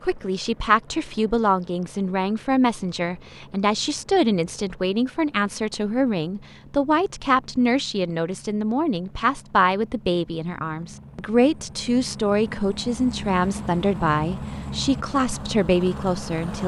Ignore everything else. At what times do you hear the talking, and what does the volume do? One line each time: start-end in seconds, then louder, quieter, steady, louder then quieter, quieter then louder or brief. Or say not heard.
0.0-16.6 steady.